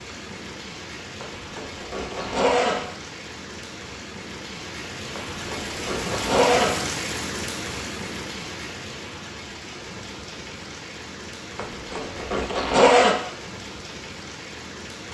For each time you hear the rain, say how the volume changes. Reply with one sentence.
The rain can be heard from 0.0 to 15.0 s, getting louder then quieter.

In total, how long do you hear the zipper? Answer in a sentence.
The zipper can be heard for 5 seconds in total.